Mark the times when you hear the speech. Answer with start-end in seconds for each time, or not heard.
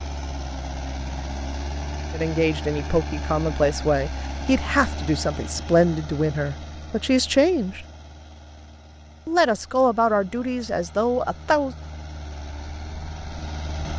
2.1-7.8, 9.2-11.8.